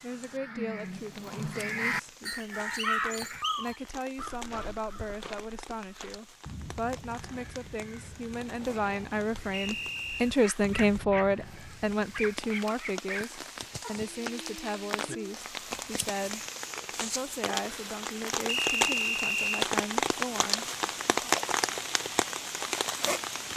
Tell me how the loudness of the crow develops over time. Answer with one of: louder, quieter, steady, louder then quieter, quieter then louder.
quieter.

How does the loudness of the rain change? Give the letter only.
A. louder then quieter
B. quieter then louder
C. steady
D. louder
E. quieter
D.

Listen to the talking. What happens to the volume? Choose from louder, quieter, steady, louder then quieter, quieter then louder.
louder then quieter.